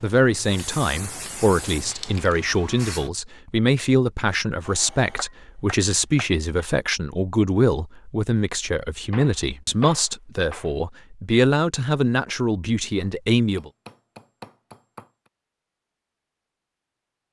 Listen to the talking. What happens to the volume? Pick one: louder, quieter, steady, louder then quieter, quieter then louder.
steady.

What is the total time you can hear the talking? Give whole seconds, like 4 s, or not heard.
14 s.